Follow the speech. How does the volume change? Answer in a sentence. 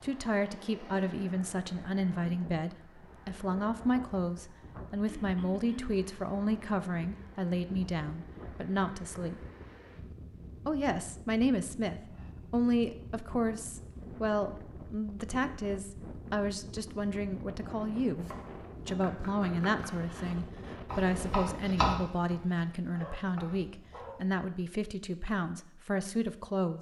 The volume of the speech stays about the same.